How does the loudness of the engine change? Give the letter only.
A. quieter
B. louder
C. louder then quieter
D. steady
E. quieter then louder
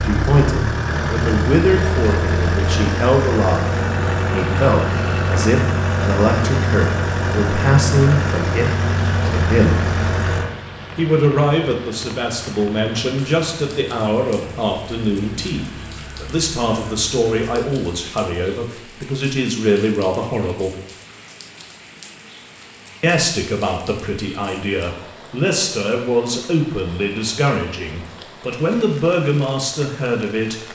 A.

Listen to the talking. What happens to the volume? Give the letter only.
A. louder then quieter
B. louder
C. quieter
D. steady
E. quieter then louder
D.